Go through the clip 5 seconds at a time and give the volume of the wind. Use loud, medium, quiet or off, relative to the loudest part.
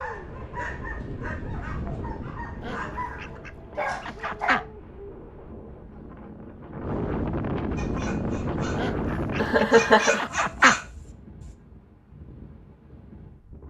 medium, loud, quiet.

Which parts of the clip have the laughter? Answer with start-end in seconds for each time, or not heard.
9.3-10.3.